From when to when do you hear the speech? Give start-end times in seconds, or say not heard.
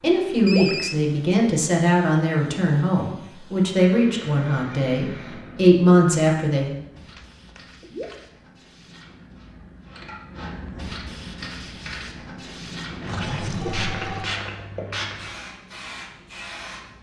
0.0-6.8.